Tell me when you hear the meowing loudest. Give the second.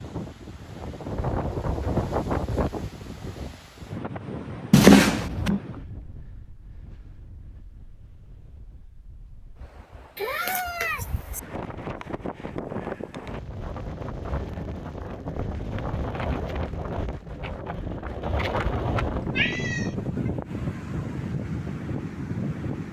5 s.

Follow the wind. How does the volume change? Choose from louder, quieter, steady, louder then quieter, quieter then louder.
quieter then louder.